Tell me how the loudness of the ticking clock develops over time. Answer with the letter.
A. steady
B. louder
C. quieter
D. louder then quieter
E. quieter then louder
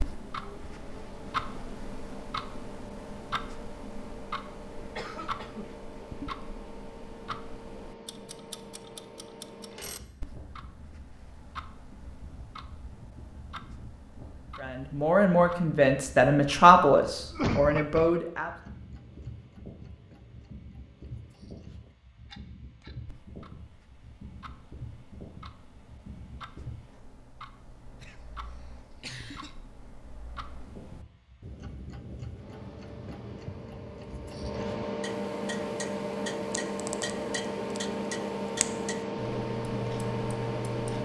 E.